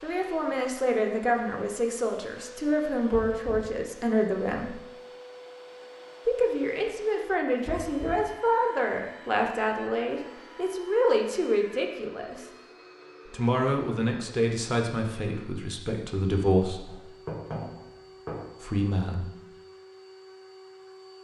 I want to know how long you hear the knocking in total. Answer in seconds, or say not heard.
3 s.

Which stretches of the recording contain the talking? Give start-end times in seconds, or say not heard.
0.0-4.8, 6.2-12.4, 13.2-17.0, 18.6-19.3.